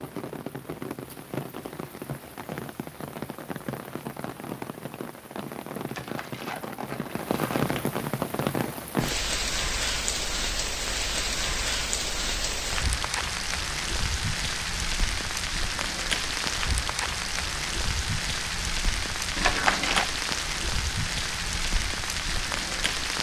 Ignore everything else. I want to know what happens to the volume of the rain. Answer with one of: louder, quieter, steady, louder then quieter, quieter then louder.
louder.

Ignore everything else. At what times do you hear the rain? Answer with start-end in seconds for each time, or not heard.
0.0-23.1.